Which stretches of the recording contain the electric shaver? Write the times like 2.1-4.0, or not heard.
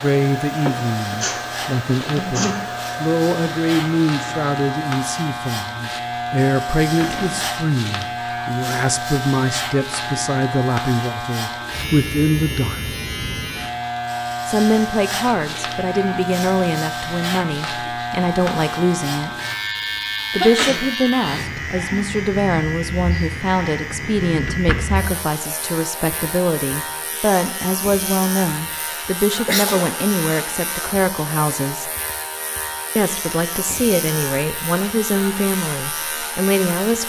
0.0-37.0.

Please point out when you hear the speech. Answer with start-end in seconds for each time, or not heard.
0.0-12.9, 14.4-19.4, 20.3-31.9, 33.0-37.0.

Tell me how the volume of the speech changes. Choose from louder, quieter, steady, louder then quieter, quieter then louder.
steady.